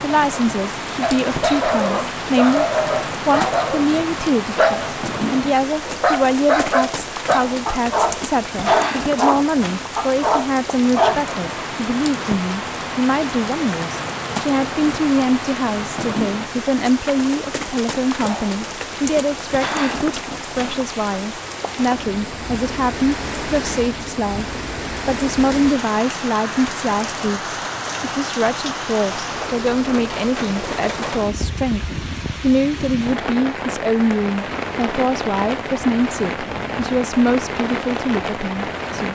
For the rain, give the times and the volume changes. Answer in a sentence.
The rain can be heard from 0.0 to 39.1 s, at a steady volume.